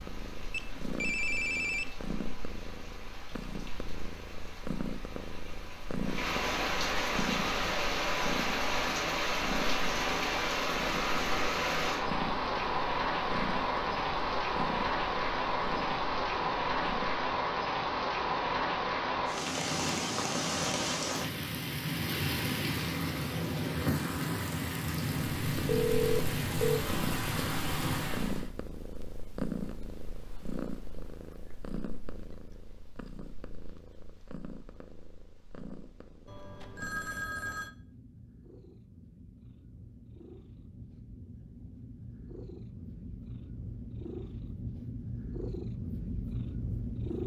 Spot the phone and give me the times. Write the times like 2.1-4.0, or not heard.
0.5-1.9, 25.6-26.9, 36.2-37.7.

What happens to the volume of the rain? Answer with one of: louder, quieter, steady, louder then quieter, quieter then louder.
louder.